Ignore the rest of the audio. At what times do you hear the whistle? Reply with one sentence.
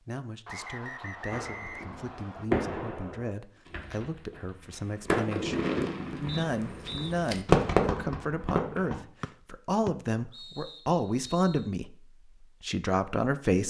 You can hear the whistle from 0.5 to 2.5 s, from 6.2 to 7.2 s and from 9.2 to 11.7 s.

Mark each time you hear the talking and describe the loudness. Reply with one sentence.
The talking can be heard from 0.1 to 13.6 s, getting louder.